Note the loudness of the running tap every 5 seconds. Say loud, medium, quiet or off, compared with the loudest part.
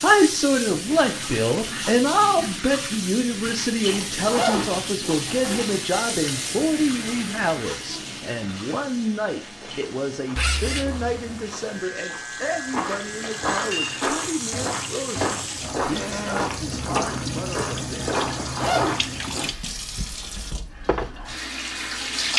loud, medium, medium, loud, loud.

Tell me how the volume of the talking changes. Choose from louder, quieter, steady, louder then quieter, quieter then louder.
quieter.